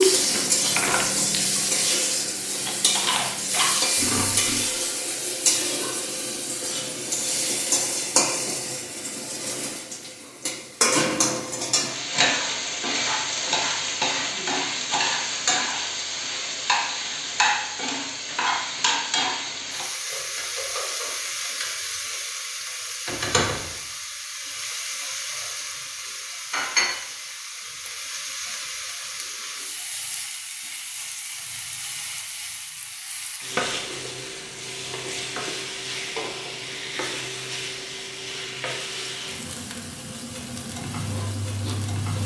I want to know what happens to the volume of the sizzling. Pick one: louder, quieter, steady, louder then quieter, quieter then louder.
quieter.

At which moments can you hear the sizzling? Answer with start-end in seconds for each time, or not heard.
0.0-42.2.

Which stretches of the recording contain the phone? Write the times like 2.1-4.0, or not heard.
not heard.